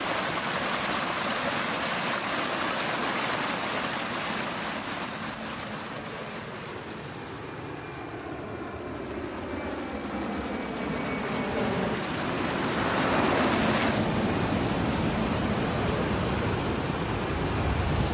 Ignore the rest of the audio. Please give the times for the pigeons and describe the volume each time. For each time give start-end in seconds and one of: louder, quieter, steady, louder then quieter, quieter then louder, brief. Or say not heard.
not heard.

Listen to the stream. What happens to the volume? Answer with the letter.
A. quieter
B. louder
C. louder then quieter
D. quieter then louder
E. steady
D.